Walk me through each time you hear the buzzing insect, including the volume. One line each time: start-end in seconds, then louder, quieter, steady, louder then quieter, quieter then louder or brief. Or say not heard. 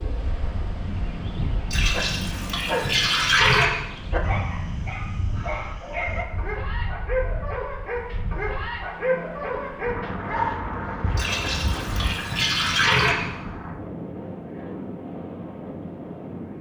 not heard.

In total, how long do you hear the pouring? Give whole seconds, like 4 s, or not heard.
4 s.